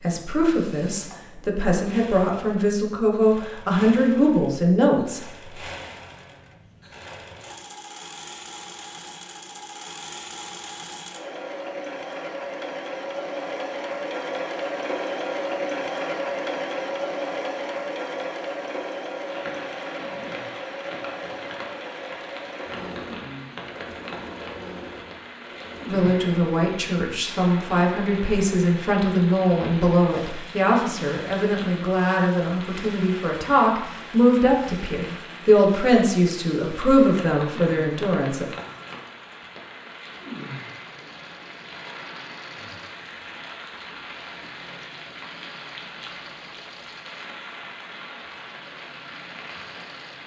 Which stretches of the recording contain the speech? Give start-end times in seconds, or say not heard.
0.0-5.2, 25.9-38.5.